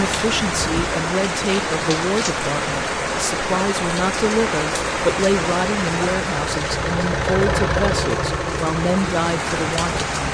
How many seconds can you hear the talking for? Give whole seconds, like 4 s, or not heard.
10 s.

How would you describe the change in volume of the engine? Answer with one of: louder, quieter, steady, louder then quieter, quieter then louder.
louder.